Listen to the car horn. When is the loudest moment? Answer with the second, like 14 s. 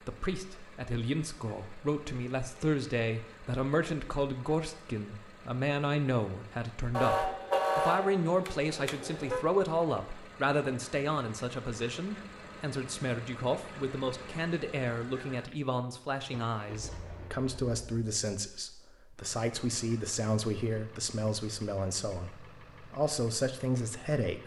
8 s.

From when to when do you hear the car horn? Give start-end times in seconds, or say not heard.
6.9-9.4.